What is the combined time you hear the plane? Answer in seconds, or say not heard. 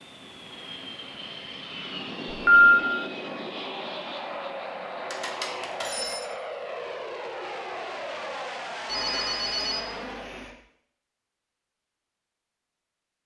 10 s.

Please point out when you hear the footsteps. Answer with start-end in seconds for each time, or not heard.
not heard.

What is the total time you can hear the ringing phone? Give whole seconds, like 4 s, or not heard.
3 s.